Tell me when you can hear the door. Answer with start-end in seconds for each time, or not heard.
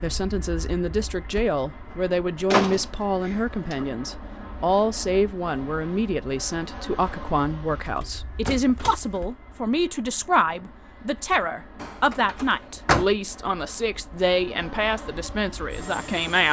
2.5-3.9, 8.0-9.2, 11.8-13.1.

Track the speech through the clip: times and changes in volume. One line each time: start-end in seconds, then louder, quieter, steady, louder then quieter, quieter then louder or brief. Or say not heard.
0.0-16.4 steady.